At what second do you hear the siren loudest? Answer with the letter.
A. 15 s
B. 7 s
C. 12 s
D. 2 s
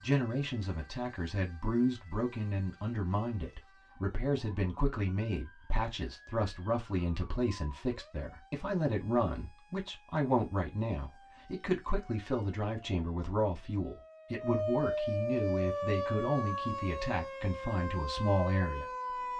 A.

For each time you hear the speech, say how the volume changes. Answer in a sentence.
You can hear the speech from 0.0 to 19.3 s, at a steady volume.